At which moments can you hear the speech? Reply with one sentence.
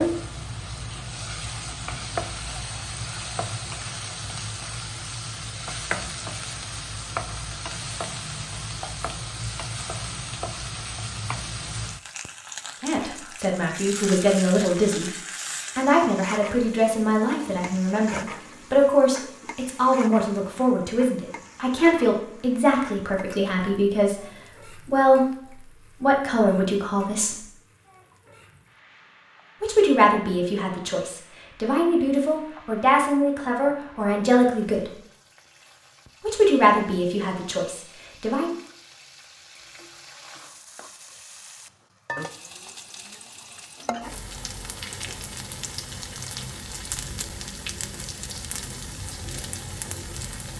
You can hear the speech from 12.8 to 15.1 s, from 15.8 to 27.4 s, from 29.6 to 34.9 s and from 36.2 to 38.5 s.